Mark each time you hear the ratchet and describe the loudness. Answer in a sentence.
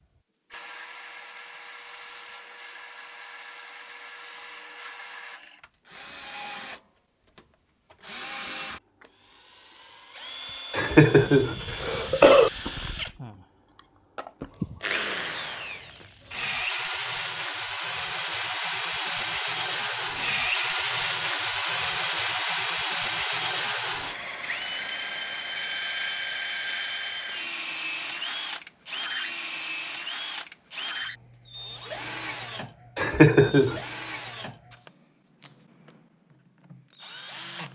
You can't hear the ratchet here.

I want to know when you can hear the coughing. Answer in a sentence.
You can hear the coughing from 10.7 to 12.5 s and from 33.0 to 33.8 s.